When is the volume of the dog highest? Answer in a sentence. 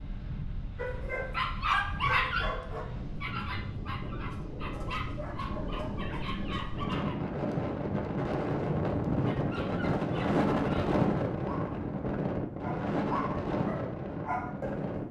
The loudest moment of the dog is at 2 seconds.